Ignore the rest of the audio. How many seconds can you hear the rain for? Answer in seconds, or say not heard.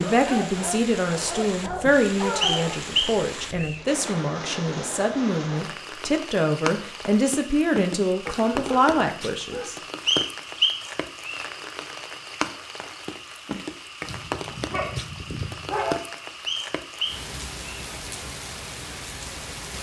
20 s.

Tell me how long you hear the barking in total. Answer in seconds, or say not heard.
6 s.